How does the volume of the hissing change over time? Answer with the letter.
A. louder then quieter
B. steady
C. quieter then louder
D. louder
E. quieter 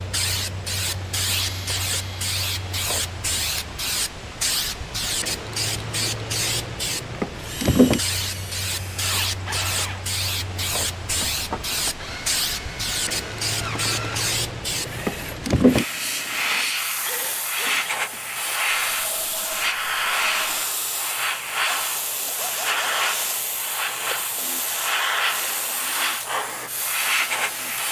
B.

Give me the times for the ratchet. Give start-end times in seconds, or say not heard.
not heard.